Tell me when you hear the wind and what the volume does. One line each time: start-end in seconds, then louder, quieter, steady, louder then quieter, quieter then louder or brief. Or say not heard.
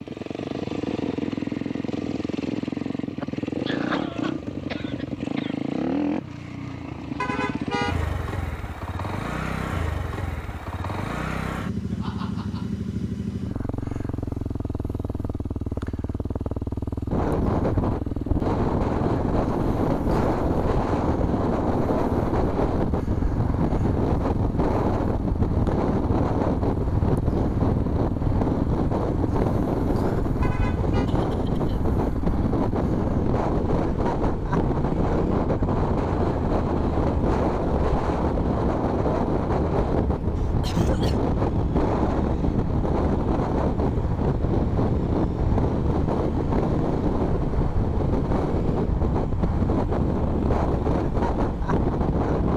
17.1-52.5 steady.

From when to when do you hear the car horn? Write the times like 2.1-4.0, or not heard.
7.2-8.0, 30.4-31.1.